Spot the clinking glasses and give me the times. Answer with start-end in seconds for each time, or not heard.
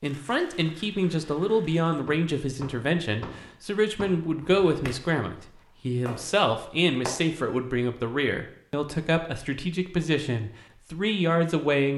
not heard.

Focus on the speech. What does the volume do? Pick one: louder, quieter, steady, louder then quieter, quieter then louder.
steady.